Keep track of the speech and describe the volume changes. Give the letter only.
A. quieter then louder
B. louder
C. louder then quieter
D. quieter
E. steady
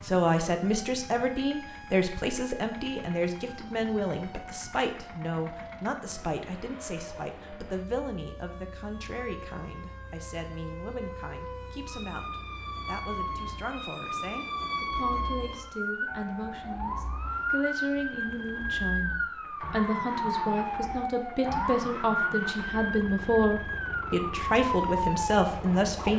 A.